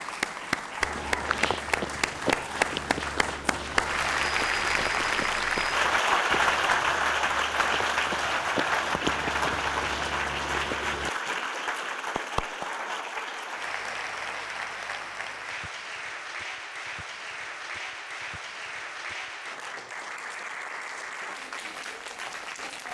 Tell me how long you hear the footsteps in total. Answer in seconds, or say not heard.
10 s.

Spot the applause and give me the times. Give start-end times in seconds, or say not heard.
0.0-22.9.